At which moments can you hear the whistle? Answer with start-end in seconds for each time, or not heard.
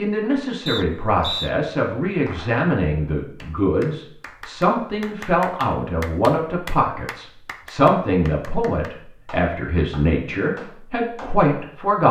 0.7-1.5.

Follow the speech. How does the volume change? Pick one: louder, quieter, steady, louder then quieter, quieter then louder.
steady.